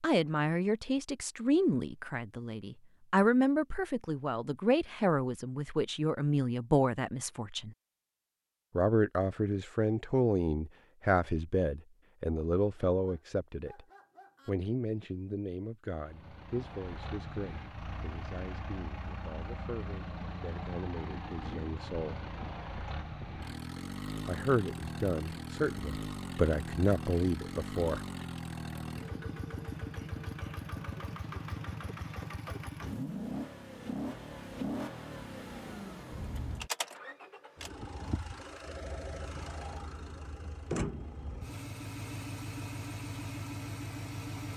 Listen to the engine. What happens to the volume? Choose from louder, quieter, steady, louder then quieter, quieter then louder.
steady.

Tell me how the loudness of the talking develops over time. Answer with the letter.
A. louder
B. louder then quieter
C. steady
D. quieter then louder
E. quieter
D.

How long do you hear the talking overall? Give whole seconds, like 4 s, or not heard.
24 s.